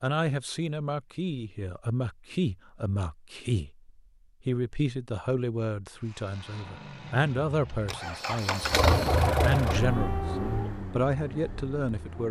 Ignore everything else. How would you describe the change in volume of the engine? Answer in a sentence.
The volume of the engine goes up, then down.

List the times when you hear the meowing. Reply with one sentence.
You can hear the meowing from 9.8 to 10.8 s.